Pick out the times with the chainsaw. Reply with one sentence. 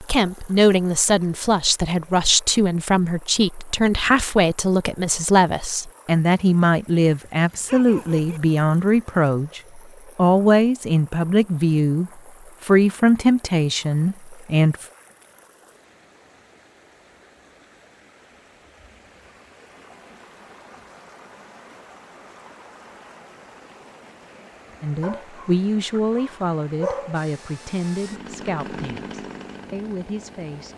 The chainsaw can be heard from 27.1 to 30.7 s.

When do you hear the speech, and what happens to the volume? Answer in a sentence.
You can hear the speech from 0.0 to 14.8 s, at a steady volume; and from 24.8 to 30.7 s, getting quieter.